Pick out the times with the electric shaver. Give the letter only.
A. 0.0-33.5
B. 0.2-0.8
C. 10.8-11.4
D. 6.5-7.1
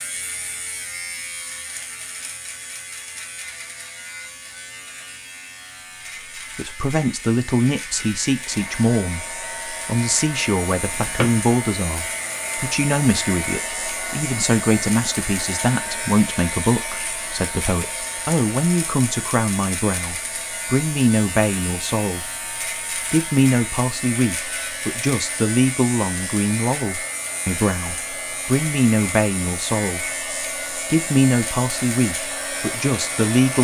A.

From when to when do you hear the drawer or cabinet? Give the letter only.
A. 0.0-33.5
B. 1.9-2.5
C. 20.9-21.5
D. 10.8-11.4
D.